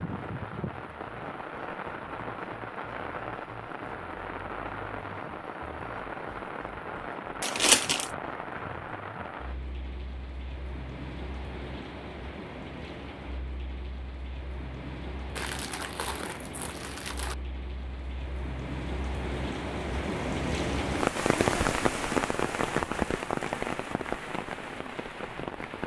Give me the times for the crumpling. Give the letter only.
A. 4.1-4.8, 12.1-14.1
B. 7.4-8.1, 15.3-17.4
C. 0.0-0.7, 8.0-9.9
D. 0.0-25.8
B.